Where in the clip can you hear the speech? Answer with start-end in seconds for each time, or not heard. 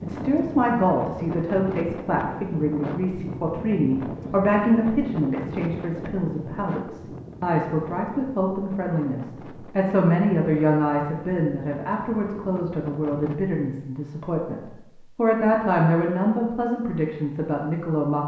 0.0-18.2.